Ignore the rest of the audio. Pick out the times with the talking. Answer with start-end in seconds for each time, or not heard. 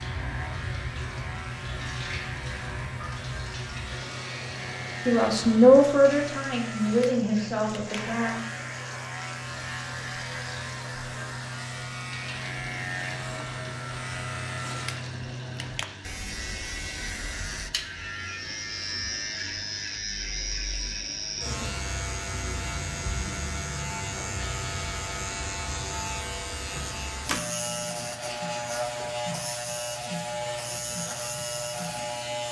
5.0-8.4.